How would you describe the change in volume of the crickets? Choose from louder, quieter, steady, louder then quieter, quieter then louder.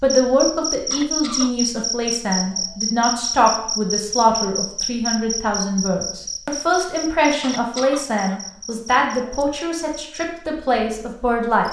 quieter.